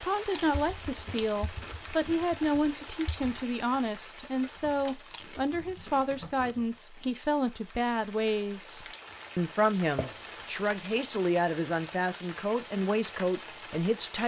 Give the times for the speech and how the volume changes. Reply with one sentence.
You can hear the speech from 0.0 to 14.2 s, at a steady volume.